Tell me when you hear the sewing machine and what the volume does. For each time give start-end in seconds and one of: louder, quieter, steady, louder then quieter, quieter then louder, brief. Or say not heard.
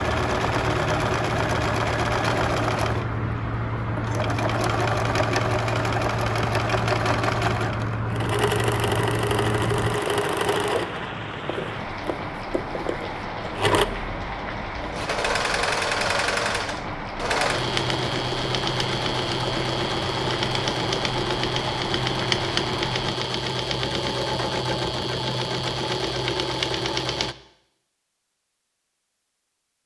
0.0-27.4 steady.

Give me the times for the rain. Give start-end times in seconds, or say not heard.
0.0-23.2.